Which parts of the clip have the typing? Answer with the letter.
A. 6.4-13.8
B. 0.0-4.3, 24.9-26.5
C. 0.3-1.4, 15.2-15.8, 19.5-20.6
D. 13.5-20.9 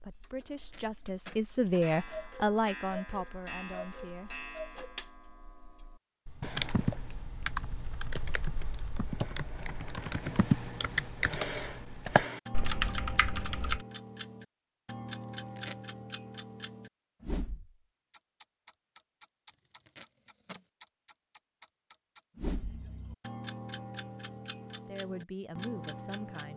A.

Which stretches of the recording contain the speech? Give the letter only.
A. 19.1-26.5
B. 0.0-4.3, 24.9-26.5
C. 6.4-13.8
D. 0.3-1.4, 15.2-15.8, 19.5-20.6
B.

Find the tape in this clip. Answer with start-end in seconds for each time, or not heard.
0.3-1.4, 15.2-15.8, 19.5-20.6.